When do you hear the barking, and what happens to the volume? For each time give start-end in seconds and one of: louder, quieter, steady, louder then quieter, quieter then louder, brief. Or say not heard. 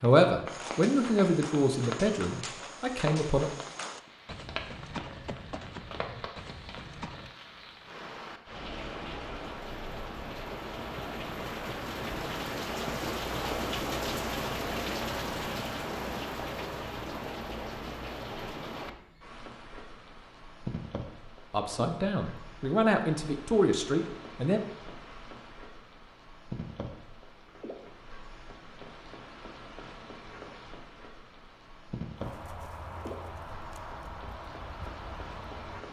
not heard.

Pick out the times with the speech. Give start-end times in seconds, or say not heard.
0.0-3.5, 21.5-24.6.